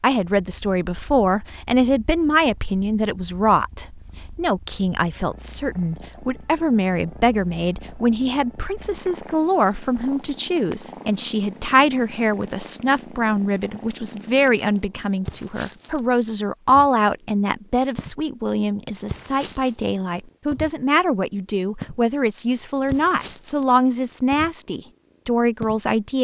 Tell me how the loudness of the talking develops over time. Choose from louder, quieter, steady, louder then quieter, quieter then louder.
steady.